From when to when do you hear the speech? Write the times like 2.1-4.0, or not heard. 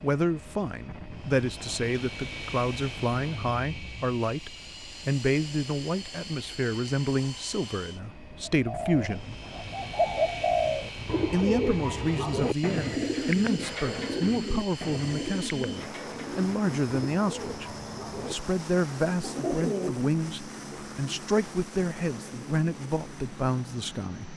0.0-9.2, 11.3-24.3.